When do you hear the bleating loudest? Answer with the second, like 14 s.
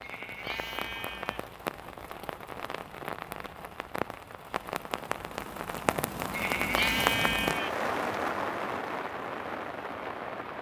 7 s.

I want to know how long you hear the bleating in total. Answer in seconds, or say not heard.
3 s.